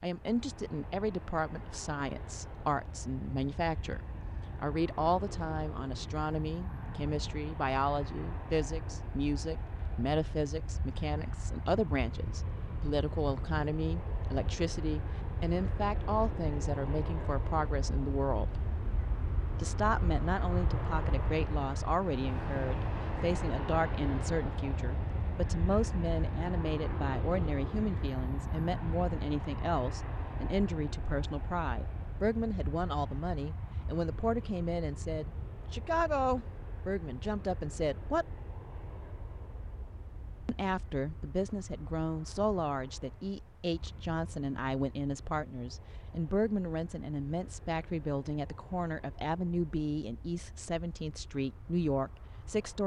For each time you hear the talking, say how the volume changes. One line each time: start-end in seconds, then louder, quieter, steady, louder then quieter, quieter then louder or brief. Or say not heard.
0.0-18.6 steady
19.6-38.2 steady
40.5-52.8 steady.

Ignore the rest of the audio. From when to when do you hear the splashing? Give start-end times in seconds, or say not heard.
not heard.